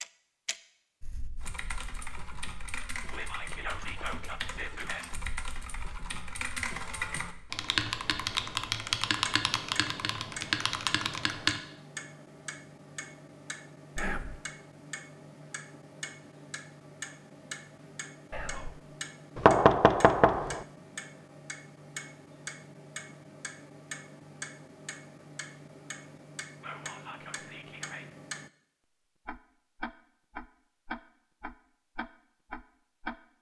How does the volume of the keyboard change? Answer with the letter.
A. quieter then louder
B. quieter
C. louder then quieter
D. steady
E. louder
E.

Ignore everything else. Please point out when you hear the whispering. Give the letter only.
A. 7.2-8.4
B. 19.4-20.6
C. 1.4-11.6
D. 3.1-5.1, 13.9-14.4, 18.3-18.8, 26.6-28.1
D.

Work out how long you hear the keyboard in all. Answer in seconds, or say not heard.
10 s.